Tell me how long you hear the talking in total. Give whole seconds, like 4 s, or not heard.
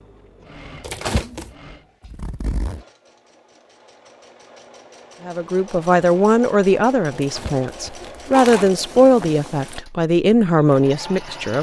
6 s.